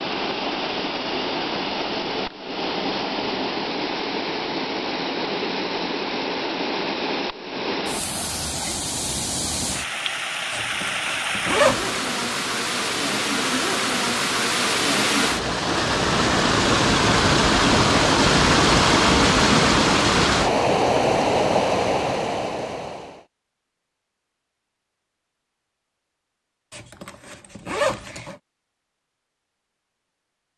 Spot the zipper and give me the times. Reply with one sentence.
The zipper can be heard from 10.5 to 12.1 s and from 26.7 to 28.4 s.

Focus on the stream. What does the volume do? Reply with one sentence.
The volume of the stream goes up.